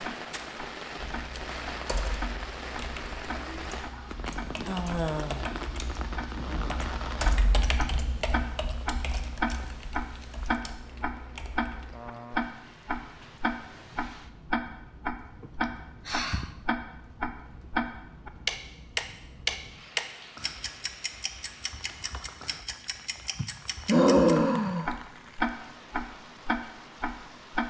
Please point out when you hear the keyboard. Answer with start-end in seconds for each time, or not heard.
1.1-12.0.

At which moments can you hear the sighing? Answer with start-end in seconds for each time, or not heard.
3.4-5.5, 15.4-16.6, 23.4-24.9.